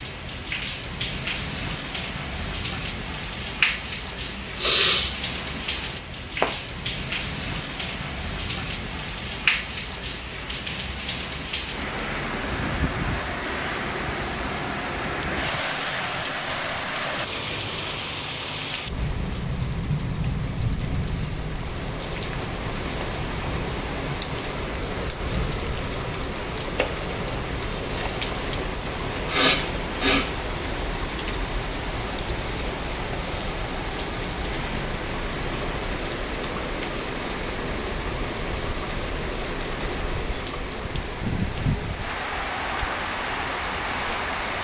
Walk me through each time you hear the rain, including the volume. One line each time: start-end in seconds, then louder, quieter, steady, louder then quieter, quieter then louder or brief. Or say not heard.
0.0-44.6 steady.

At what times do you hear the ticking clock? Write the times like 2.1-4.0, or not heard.
not heard.